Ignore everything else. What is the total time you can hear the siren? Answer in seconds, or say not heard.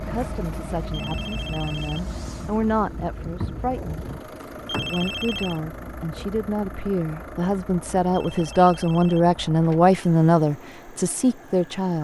not heard.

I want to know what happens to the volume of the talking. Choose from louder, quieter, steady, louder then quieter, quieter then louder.
louder.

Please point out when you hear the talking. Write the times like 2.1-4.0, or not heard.
0.0-4.0, 4.7-11.9.